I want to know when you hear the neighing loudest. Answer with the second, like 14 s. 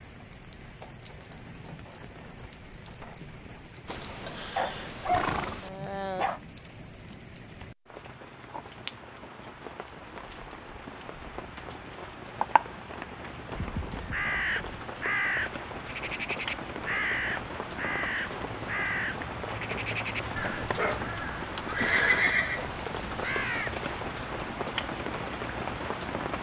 22 s.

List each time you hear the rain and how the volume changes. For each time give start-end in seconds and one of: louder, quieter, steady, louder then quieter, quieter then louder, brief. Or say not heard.
0.0-26.3 louder.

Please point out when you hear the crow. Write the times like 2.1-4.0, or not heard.
14.1-24.1.